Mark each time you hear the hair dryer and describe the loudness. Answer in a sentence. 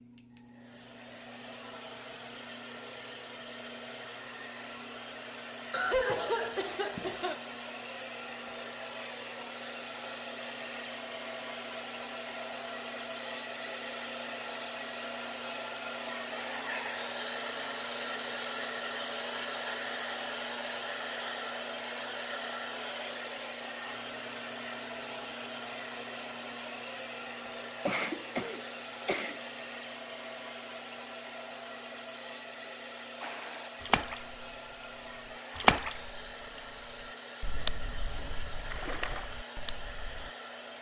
The hair dryer can be heard from 0.0 to 40.7 s, getting louder then quieter.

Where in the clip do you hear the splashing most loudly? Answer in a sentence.
The volume of the splashing peaks at 36 seconds.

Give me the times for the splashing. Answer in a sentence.
You can hear the splashing from 33.2 to 40.3 s.